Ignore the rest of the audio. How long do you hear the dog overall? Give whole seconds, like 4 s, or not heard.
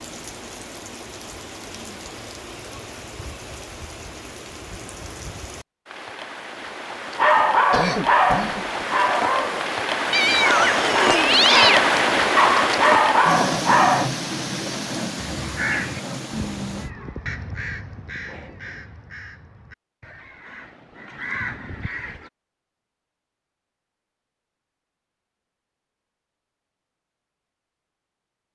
7 s.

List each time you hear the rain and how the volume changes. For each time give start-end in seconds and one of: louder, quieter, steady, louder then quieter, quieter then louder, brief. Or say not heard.
0.0-16.9 louder then quieter.